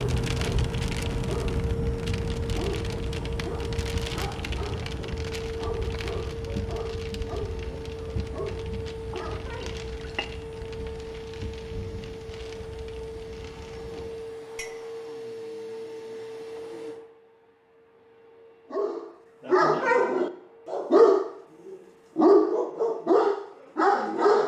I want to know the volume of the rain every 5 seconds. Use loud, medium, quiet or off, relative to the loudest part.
loud, medium, quiet, off, off.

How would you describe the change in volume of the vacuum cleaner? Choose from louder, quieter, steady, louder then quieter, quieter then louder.
quieter.